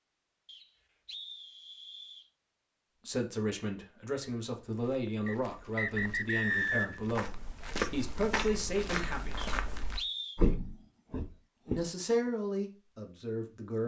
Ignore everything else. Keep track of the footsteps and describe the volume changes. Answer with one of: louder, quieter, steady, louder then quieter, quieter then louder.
louder.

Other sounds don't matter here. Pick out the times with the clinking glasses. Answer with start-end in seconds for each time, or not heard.
not heard.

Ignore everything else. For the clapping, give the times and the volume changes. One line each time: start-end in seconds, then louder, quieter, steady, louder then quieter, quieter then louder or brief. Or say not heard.
not heard.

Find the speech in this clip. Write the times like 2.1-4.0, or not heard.
3.0-9.5, 11.7-13.8.